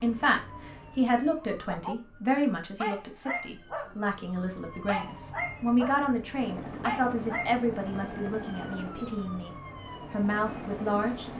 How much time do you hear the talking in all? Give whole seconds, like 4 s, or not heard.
11 s.